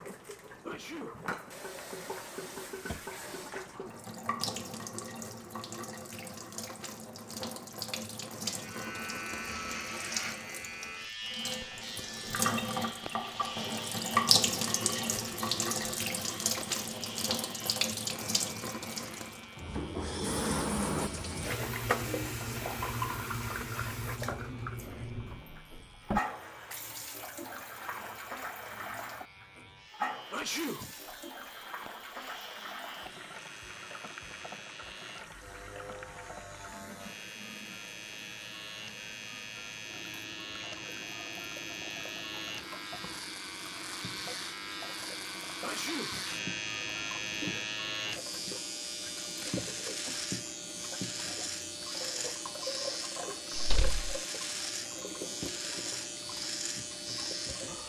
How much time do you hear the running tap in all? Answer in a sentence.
You can hear the running tap for 58 seconds altogether.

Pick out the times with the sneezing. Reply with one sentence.
The sneezing can be heard from 0.7 to 1.2 s, from 30.3 to 30.9 s and from 45.6 to 46.2 s.